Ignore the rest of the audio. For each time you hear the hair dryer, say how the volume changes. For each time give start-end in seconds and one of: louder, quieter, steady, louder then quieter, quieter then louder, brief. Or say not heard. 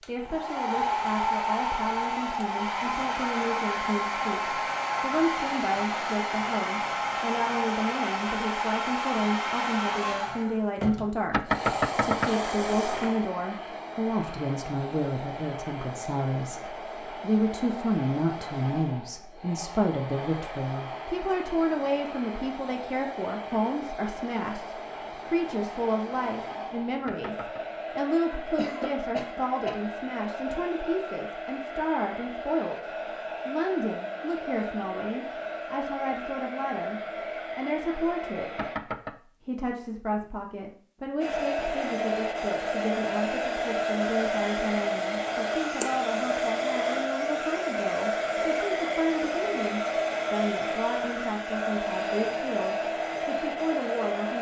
0.0-38.8 quieter
41.2-54.3 steady.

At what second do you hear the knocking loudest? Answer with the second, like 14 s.
12 s.